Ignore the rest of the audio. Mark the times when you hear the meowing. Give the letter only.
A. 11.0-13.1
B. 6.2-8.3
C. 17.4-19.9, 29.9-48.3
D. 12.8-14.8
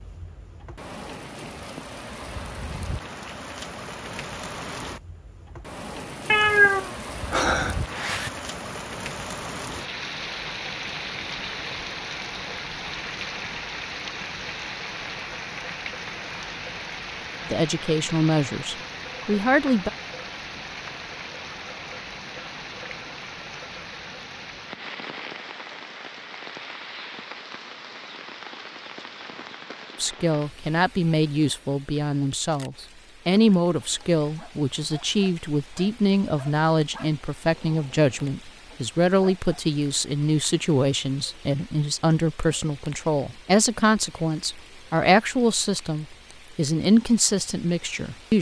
B.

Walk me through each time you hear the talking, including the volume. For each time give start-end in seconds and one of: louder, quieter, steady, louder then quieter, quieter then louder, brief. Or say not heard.
17.4-19.9 brief
29.9-48.3 steady.